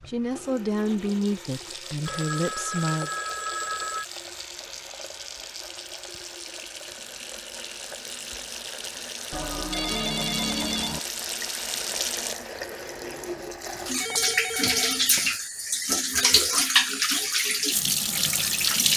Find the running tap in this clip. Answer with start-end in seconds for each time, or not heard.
0.0-18.9.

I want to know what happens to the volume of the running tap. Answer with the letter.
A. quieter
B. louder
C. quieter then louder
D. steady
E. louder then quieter
B.